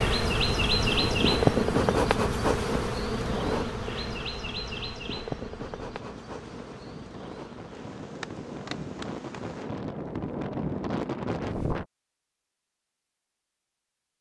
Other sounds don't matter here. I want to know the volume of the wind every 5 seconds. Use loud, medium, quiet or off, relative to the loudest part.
medium, medium, loud.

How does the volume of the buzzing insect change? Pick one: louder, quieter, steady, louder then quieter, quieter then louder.
quieter.